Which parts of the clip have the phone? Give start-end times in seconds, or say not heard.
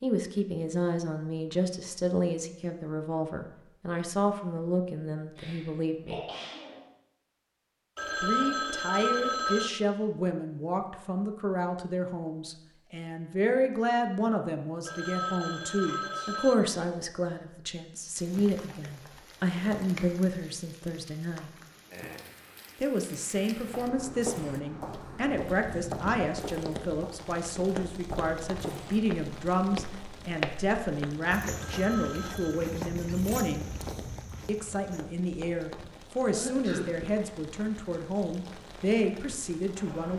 8.0-9.7, 14.8-16.6, 31.6-32.6.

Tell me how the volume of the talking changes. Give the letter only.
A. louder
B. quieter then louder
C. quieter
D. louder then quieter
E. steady
E.